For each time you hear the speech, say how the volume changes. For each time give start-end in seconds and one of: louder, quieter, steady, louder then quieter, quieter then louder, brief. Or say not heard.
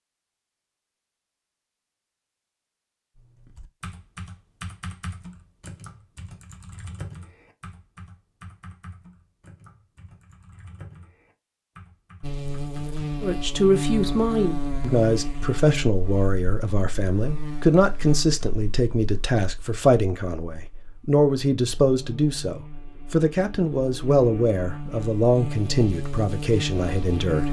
13.2-27.4 steady.